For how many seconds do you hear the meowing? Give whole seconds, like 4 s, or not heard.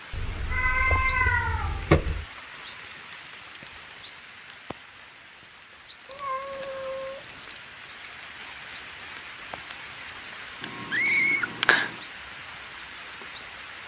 5 s.